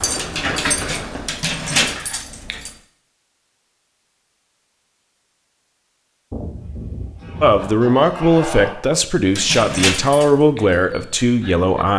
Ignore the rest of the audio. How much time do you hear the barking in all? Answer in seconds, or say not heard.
5 s.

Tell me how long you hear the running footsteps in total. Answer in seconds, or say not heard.
2 s.